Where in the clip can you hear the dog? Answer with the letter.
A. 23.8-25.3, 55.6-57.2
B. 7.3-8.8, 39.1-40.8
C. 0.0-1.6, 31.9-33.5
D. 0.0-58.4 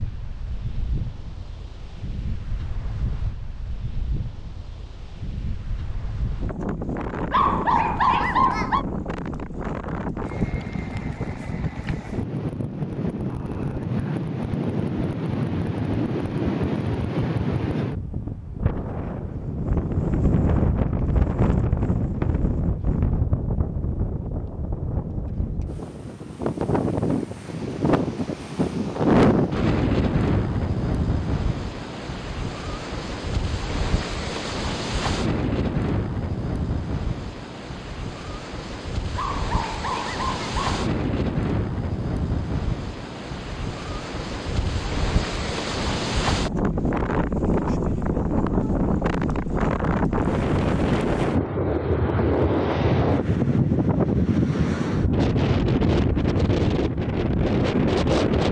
B.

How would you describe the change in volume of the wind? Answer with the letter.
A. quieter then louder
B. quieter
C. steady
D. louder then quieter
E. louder
E.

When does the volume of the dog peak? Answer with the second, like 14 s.
8 s.